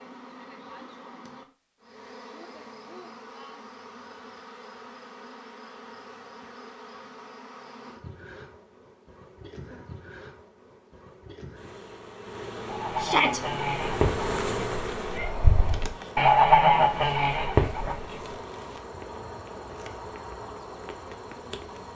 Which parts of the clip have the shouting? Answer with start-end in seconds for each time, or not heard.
12.9-13.4.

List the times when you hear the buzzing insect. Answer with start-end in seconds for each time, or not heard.
0.0-21.9.